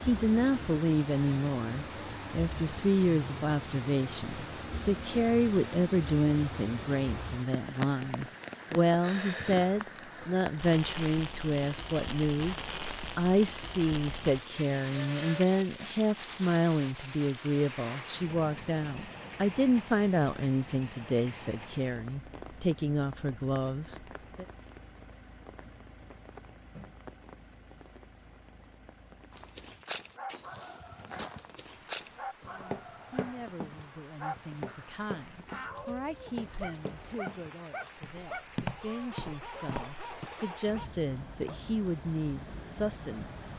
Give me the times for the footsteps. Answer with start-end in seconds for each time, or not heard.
29.3-40.3.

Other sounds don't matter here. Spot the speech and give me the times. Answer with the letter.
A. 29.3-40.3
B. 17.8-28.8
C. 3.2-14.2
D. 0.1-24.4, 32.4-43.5
D.